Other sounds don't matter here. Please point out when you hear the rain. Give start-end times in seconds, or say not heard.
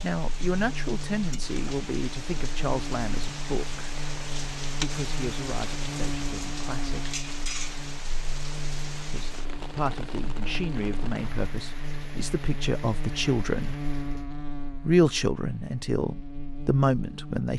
0.0-14.2.